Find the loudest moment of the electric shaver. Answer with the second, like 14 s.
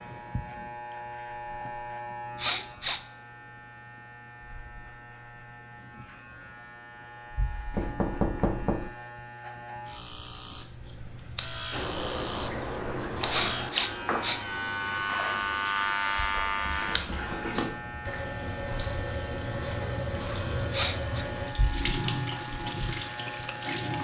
16 s.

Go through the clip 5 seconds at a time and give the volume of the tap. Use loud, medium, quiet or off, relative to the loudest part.
off, off, loud, loud, loud.